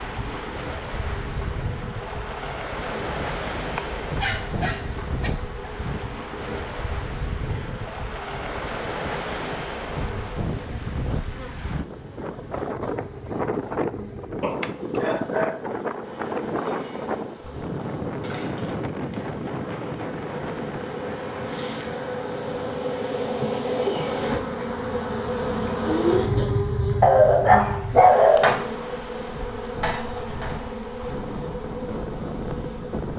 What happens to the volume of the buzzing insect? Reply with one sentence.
The volume of the buzzing insect goes up.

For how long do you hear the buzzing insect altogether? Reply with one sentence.
You can hear the buzzing insect for 33 seconds altogether.